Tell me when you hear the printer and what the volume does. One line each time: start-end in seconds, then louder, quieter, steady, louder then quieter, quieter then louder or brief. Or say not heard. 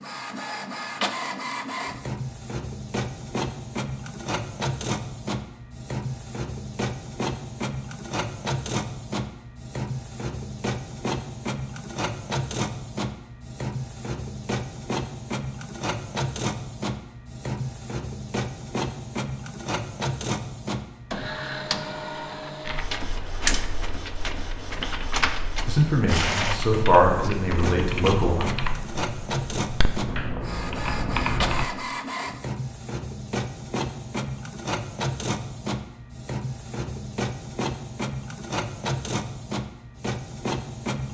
0.0-41.0 steady.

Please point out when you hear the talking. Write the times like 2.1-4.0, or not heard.
25.6-28.5.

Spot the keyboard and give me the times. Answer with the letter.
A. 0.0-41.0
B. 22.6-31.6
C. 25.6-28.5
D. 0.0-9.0
B.